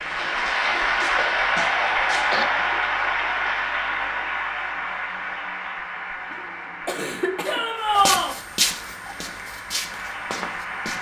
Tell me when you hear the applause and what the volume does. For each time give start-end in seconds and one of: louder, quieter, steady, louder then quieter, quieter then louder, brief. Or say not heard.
0.0-10.9 quieter.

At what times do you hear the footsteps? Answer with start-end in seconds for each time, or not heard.
0.2-2.5, 7.9-10.9.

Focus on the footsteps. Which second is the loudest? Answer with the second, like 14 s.
9 s.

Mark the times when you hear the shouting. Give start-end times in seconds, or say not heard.
7.5-8.3.